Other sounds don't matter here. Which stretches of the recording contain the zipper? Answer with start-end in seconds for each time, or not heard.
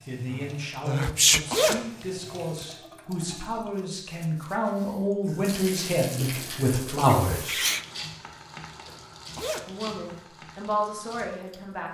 1.0-1.8, 8.8-10.1.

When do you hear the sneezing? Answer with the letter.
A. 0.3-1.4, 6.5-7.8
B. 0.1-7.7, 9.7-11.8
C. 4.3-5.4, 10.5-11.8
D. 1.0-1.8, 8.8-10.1
A.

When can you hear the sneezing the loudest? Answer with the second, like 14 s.
1 s.